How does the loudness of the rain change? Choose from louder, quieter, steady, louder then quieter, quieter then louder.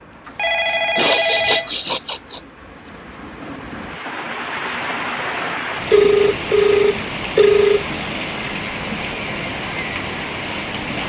louder.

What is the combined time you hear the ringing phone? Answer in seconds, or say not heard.
4 s.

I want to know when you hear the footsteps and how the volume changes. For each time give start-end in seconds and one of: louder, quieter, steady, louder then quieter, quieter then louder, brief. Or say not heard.
not heard.